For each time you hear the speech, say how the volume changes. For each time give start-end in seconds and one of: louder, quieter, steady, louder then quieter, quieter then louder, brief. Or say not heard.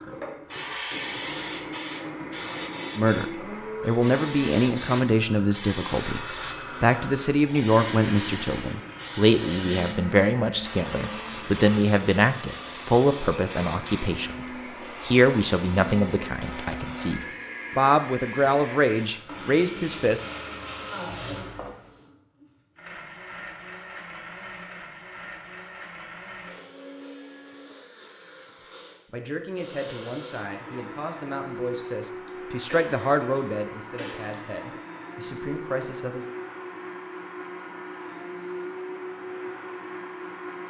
3.0-20.2 steady
29.1-36.2 louder then quieter.